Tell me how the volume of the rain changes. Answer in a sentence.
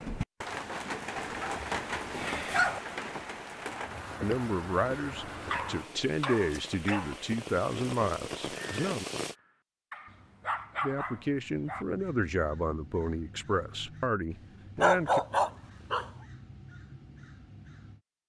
The loudness of the rain goes down, then up.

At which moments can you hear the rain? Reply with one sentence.
The rain can be heard from 0.0 to 9.3 s.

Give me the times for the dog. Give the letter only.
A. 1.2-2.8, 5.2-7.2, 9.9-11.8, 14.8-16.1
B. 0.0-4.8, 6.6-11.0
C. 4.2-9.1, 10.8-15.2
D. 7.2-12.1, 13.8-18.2
A.